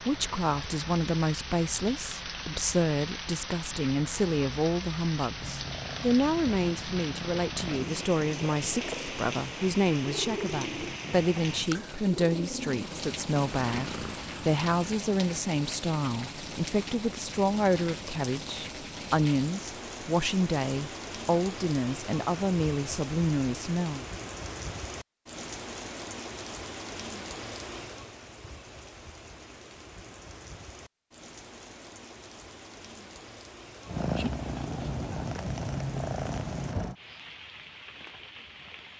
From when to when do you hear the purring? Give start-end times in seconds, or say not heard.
5.3-15.0, 33.9-37.0.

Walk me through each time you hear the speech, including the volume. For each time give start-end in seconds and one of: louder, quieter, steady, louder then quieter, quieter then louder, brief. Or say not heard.
0.0-24.1 steady.